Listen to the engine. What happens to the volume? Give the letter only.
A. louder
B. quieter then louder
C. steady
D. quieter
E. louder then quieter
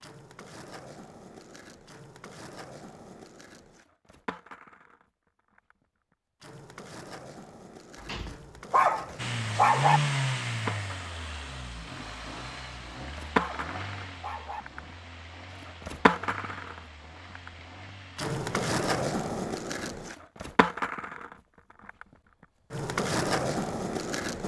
D.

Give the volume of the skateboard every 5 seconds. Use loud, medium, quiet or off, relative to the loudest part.
quiet, quiet, loud, loud, loud.